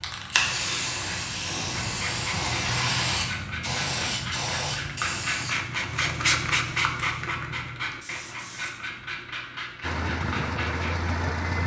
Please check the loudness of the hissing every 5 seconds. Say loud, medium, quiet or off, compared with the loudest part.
loud, medium, off.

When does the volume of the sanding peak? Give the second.
6 s.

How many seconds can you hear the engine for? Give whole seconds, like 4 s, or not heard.
2 s.